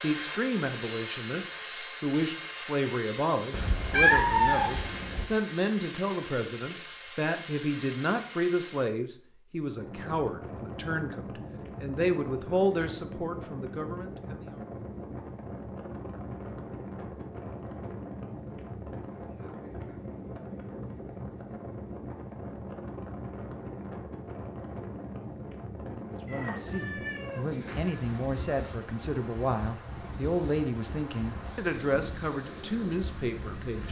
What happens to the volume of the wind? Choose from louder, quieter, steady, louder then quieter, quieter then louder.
steady.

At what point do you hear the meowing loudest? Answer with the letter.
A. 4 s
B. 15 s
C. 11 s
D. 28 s
A.